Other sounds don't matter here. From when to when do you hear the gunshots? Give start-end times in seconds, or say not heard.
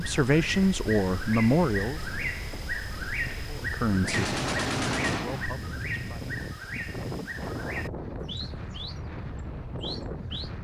4.0-5.5.